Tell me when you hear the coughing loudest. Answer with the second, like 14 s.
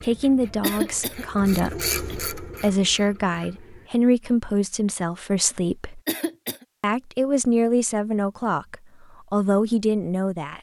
1 s.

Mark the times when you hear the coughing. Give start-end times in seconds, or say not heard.
0.6-2.1, 6.0-6.7.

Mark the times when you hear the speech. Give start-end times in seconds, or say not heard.
0.0-6.0, 6.8-10.5.